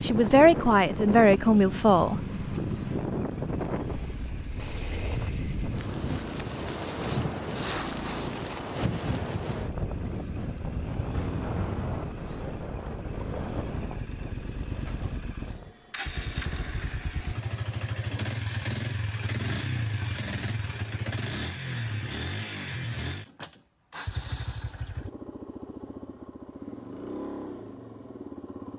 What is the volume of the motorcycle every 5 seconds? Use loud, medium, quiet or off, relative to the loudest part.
medium, medium, medium, loud, loud, medium.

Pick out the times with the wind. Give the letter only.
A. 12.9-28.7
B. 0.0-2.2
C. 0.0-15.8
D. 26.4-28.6
C.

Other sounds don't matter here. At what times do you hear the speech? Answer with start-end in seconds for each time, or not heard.
0.0-2.2.